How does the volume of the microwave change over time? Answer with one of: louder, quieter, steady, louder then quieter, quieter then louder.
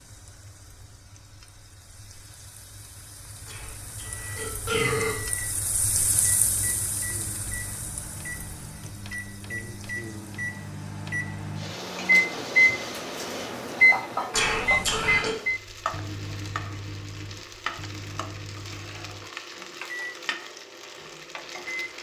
louder then quieter.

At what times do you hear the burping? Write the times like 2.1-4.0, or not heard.
3.5-5.2, 14.3-15.3.